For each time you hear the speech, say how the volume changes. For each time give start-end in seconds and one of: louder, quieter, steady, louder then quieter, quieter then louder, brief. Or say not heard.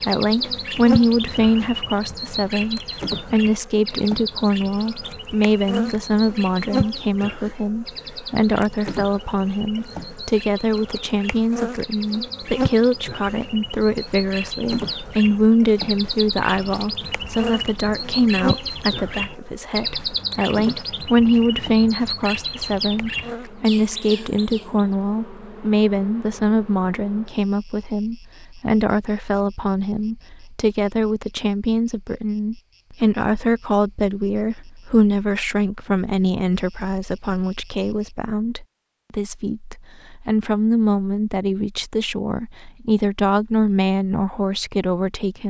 0.1-45.4 steady.